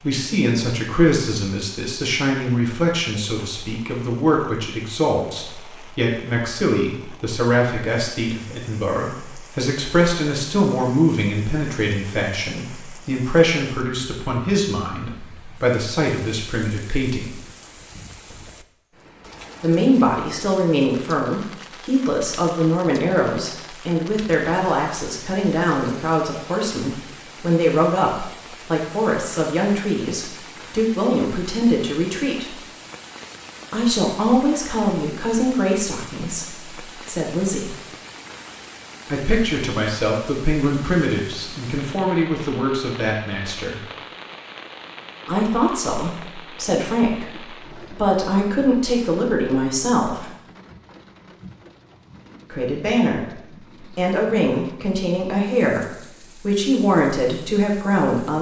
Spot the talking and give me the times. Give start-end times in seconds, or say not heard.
0.0-17.4, 19.6-32.5, 33.7-37.8, 39.0-43.9, 45.2-50.3, 52.5-58.3.